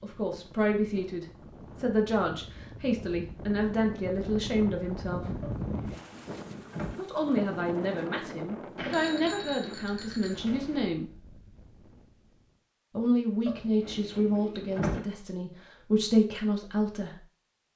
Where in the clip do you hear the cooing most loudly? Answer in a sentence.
The loudest moment of the cooing is at 15 seconds.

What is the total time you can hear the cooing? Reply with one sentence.
You can hear the cooing for 3 seconds altogether.